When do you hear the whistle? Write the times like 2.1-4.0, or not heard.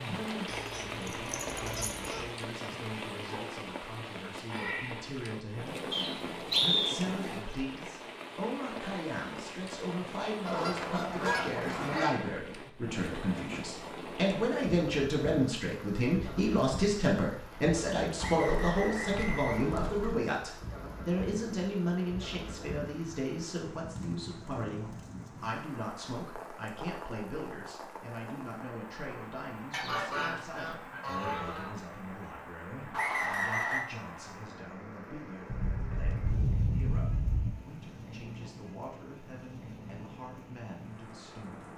5.9-7.0, 18.1-19.9, 32.9-33.9.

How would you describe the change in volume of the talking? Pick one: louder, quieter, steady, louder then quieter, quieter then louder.
louder then quieter.